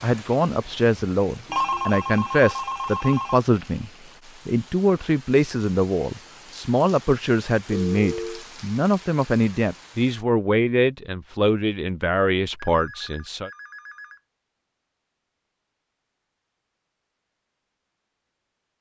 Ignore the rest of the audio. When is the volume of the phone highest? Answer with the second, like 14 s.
2 s.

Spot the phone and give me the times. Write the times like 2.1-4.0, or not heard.
1.4-3.4, 7.7-8.4, 12.6-14.2.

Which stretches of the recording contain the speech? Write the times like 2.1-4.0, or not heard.
0.0-13.5.